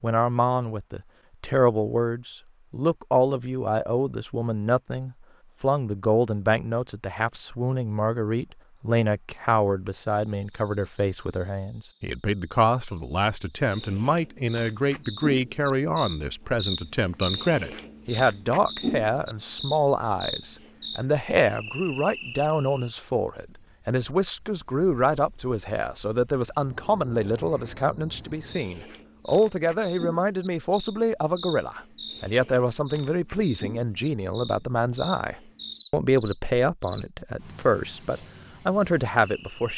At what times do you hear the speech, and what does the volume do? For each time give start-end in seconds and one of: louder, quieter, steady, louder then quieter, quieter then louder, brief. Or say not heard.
0.0-39.7 steady.